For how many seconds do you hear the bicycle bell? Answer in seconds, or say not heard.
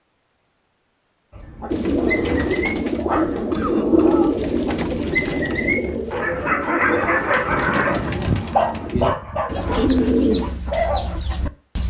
3 s.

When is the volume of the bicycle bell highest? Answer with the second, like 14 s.
8 s.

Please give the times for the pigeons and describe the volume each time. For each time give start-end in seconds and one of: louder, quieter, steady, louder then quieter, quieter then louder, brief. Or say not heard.
1.7-11.8 quieter then louder.